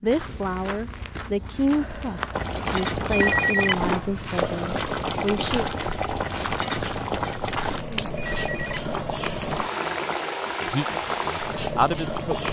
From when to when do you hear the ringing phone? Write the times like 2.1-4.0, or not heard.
3.0-4.2, 8.2-9.7.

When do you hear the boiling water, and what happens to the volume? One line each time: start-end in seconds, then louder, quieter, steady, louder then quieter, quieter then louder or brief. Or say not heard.
2.3-12.4 steady.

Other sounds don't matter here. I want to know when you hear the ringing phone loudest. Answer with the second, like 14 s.
3 s.